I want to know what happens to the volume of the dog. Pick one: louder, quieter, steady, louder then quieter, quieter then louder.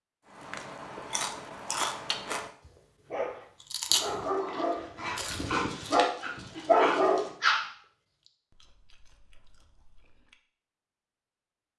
louder.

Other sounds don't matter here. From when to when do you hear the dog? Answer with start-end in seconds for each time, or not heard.
3.1-7.7.